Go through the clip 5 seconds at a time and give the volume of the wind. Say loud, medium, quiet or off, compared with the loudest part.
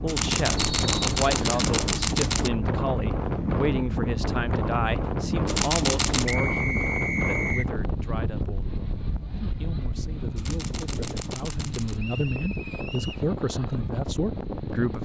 loud, loud, medium.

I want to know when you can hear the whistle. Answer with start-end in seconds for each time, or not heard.
0.6-1.6, 6.2-7.7, 11.9-13.2.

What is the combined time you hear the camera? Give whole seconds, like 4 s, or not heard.
5 s.